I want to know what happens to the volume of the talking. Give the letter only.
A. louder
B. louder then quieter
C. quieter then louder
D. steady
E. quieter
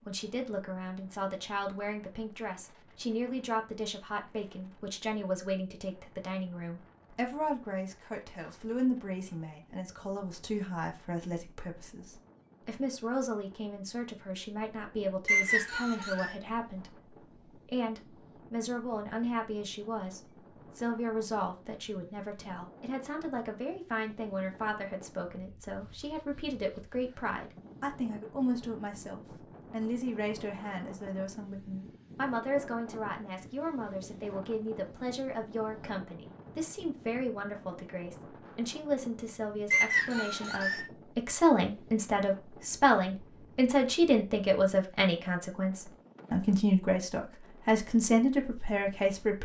A.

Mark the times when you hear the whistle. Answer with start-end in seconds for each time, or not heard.
15.2-16.4, 39.7-40.9.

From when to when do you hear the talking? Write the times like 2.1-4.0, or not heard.
0.1-49.4.